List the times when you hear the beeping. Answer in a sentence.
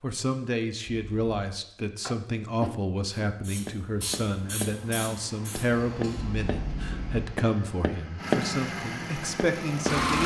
You can hear the beeping from 0.8 to 1.3 s and from 6.2 to 7.3 s.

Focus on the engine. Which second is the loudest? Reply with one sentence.
The loudest moment of the engine is at 10 seconds.